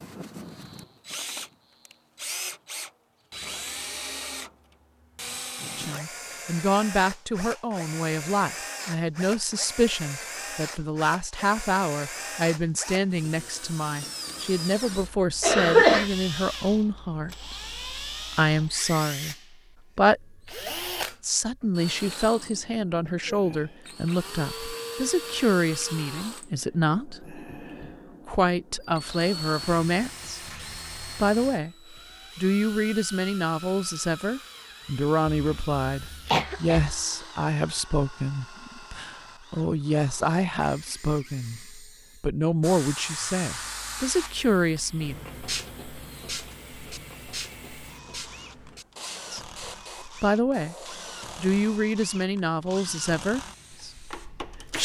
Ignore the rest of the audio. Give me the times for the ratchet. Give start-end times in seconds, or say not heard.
not heard.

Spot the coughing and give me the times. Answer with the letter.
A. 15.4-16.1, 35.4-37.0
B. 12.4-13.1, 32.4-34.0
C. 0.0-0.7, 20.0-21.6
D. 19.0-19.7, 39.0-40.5
A.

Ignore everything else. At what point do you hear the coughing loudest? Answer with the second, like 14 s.
16 s.